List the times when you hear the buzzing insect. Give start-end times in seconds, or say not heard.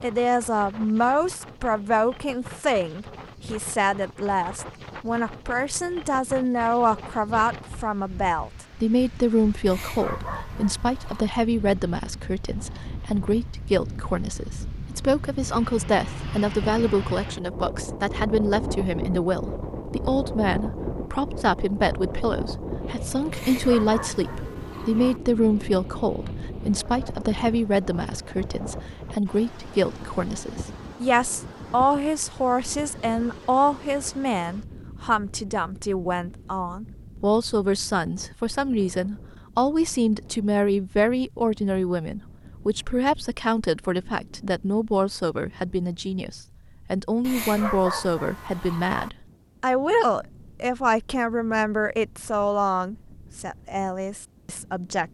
not heard.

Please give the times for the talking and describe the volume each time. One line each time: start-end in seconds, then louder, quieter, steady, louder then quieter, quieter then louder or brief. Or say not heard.
0.0-55.1 steady.